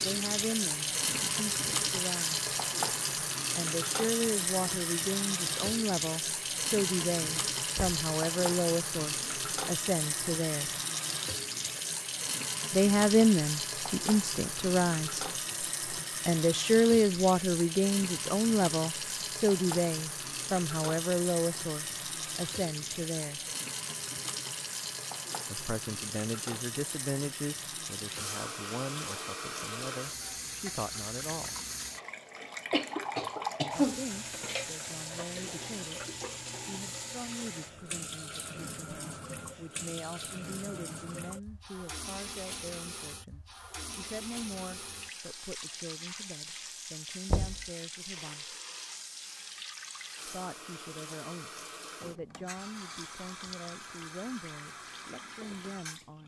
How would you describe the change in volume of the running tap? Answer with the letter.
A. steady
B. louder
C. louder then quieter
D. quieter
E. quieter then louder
D.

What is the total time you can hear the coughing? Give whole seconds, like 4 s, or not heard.
2 s.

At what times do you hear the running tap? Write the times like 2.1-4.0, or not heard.
0.0-56.2.